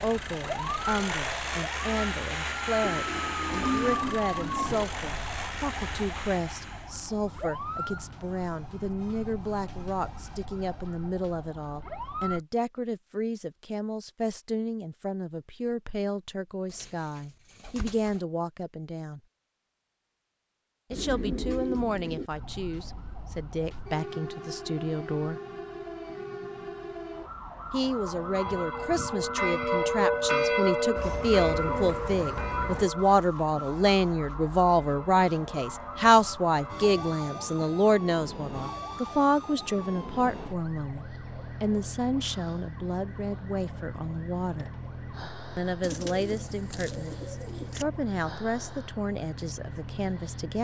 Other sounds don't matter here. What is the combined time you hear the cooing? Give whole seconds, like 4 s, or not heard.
9 s.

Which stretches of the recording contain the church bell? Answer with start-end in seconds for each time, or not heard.
27.8-37.9.